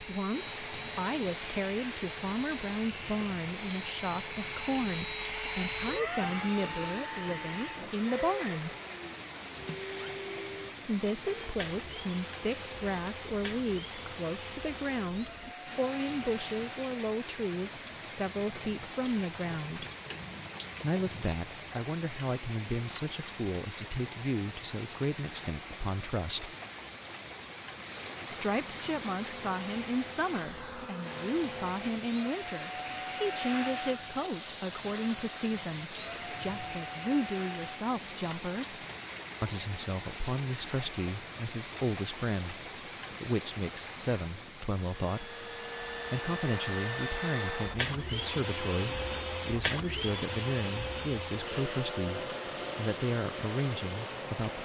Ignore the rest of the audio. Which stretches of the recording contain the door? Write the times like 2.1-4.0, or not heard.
not heard.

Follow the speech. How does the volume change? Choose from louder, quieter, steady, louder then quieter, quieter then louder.
steady.